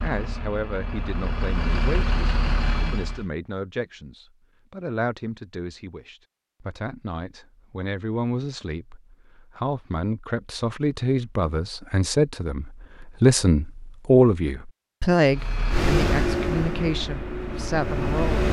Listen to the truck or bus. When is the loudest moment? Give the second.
16 s.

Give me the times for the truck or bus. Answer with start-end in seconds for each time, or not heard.
0.0-3.2, 15.2-18.4.